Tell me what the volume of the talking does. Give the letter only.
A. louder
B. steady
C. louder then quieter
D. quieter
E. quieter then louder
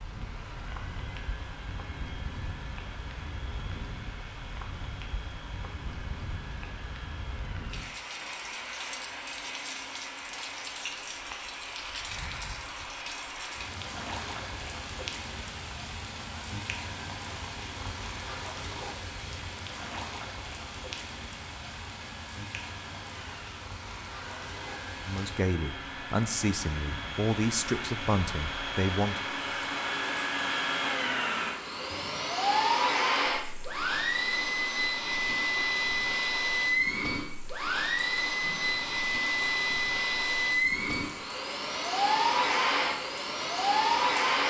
C.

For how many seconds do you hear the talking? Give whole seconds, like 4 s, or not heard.
4 s.